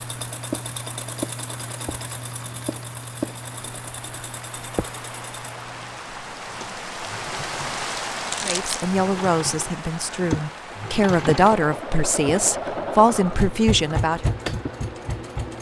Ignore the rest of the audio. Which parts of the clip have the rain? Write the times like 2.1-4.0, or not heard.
0.0-15.5.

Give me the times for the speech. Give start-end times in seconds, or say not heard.
8.4-14.3.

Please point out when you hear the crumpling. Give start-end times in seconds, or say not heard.
8.3-8.9.